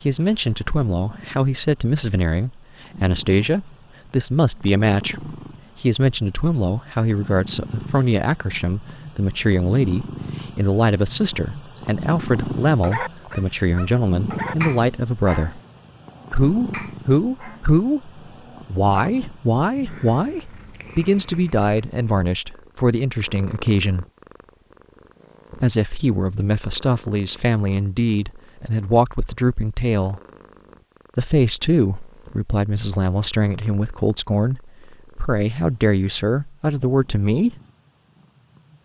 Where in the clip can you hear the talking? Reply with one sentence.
The talking can be heard from 0.0 to 15.6 s, from 16.3 to 24.1 s, from 25.6 to 30.2 s and from 31.1 to 37.5 s.